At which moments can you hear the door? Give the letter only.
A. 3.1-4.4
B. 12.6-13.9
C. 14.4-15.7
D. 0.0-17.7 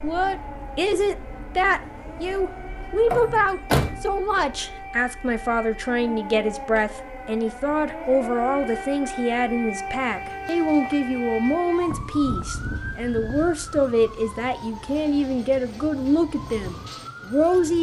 A.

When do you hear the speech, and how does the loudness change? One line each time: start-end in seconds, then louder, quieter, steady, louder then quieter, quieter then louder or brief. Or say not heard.
0.0-17.7 steady.